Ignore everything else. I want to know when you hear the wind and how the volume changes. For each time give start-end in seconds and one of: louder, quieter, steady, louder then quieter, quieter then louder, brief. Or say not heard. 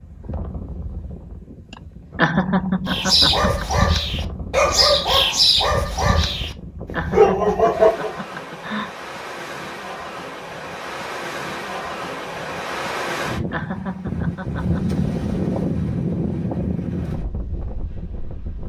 0.0-18.6 louder.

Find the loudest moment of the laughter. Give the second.
2 s.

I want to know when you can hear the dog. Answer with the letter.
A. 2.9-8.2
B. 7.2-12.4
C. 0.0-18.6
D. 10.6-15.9
A.